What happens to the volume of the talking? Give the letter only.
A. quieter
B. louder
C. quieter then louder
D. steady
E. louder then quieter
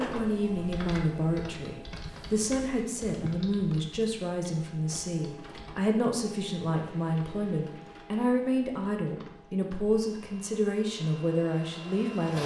D.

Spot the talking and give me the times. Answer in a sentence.
You can hear the talking from 0.0 to 12.4 s.